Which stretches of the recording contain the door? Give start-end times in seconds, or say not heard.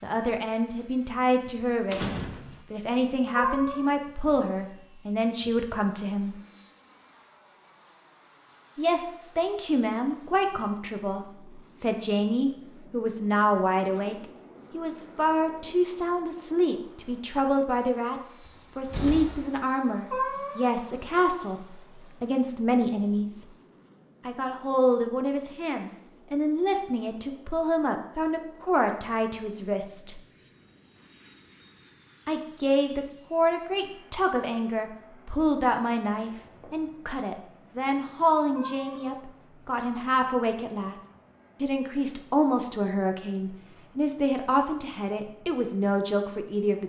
1.9-2.6, 18.4-19.6, 36.2-37.1.